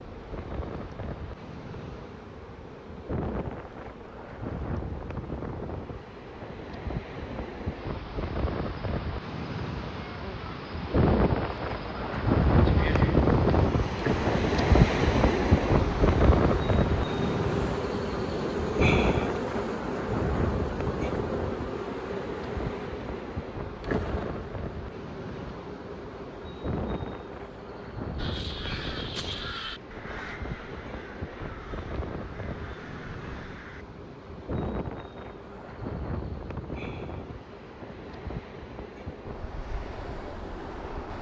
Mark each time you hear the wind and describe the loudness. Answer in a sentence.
You can hear the wind from 0.0 to 41.1 s, getting louder then quieter.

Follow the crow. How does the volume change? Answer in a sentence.
The volume of the crow goes down.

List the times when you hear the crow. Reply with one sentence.
The crow can be heard from 28.1 to 33.9 s.